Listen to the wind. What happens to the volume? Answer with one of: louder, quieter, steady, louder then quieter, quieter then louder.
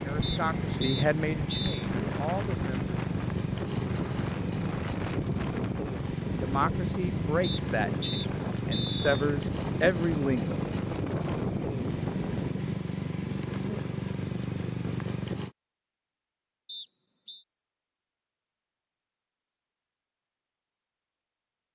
steady.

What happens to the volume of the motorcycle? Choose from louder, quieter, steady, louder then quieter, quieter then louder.
steady.